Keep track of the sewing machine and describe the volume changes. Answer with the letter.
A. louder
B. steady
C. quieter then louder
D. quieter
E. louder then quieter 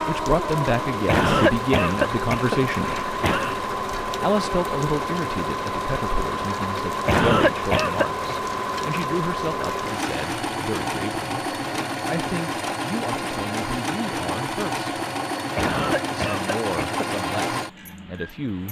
B.